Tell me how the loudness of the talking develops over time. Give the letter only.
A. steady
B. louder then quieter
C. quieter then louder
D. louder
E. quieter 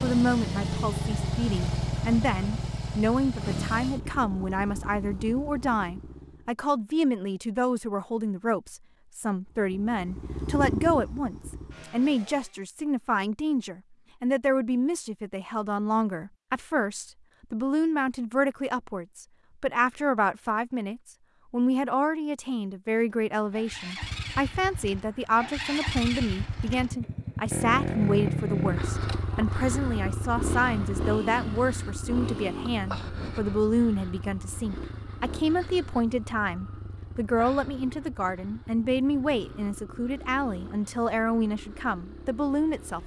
A.